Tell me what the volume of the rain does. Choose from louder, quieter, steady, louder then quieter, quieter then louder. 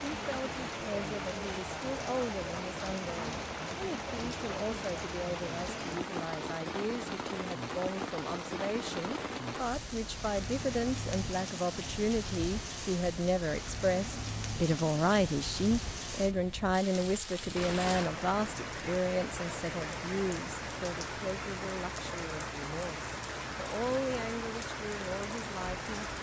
steady.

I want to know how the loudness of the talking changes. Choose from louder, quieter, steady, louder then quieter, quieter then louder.
louder then quieter.